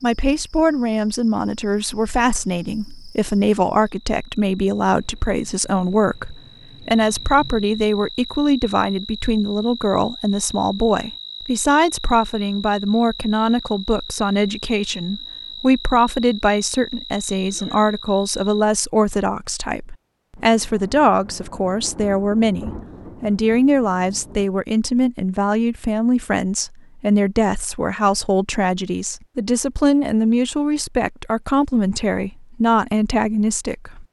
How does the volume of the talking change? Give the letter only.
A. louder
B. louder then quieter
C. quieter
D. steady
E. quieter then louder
D.